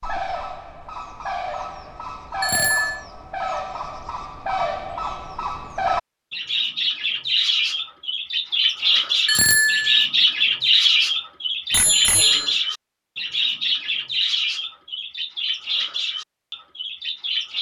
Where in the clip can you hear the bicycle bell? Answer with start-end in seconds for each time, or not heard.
2.4-3.0, 9.2-10.1, 11.7-12.6.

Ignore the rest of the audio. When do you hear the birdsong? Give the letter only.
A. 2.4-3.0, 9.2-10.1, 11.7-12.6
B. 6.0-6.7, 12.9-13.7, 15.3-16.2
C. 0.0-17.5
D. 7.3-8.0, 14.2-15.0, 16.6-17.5
C.